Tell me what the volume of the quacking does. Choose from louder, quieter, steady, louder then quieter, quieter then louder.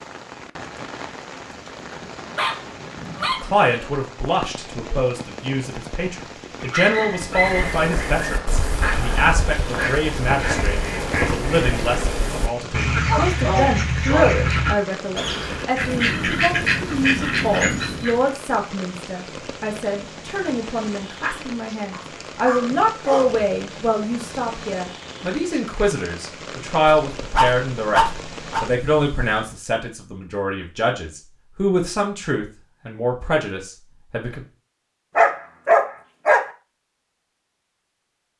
louder.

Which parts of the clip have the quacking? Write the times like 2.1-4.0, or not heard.
7.1-18.3.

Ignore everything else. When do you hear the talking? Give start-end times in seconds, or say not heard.
3.4-28.0, 28.6-34.5.